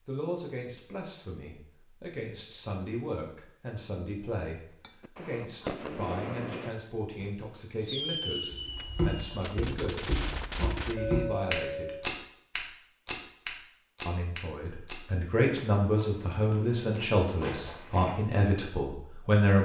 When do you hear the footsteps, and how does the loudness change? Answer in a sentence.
You can hear the footsteps from 8.5 to 18.2 s, getting quieter.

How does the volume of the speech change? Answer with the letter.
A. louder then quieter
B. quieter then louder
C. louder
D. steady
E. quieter
C.